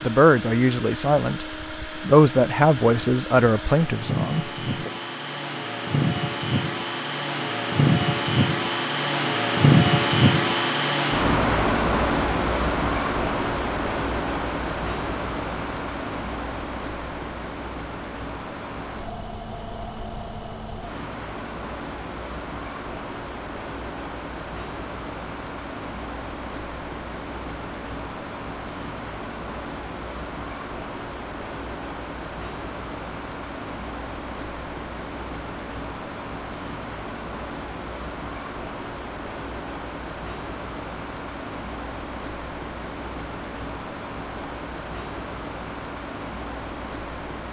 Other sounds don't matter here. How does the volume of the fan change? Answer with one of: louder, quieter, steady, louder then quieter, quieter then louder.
quieter.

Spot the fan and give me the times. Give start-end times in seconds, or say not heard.
0.0-47.4.